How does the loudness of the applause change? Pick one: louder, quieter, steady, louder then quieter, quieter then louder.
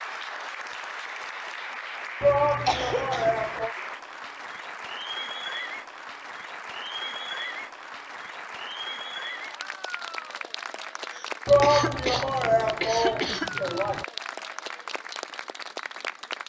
steady.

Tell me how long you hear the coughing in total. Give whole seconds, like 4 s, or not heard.
3 s.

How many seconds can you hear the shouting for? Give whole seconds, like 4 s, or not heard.
4 s.